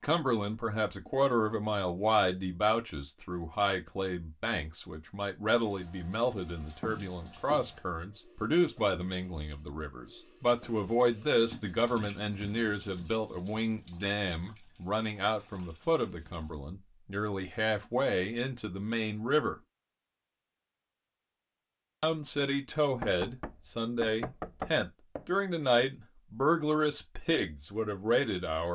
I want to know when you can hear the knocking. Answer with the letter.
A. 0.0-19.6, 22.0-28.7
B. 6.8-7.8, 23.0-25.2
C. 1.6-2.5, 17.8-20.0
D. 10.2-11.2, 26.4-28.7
B.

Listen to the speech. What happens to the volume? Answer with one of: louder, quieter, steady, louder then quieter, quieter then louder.
steady.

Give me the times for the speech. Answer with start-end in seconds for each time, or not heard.
0.0-19.6, 22.0-28.7.